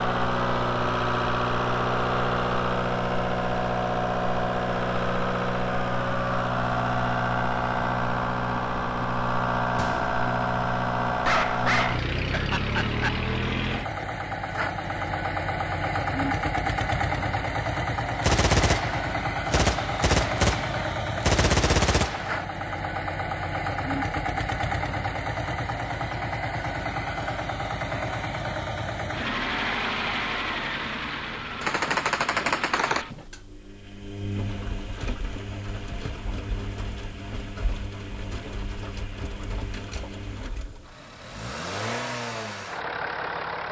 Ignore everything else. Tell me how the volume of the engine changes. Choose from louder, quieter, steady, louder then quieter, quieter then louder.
quieter.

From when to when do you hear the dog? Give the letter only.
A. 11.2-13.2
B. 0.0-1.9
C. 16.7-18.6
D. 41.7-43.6
A.